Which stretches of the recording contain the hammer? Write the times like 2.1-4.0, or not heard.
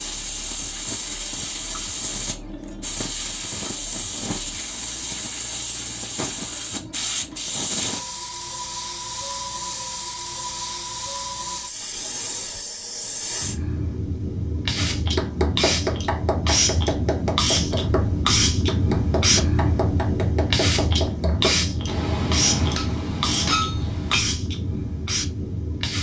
14.8-24.2.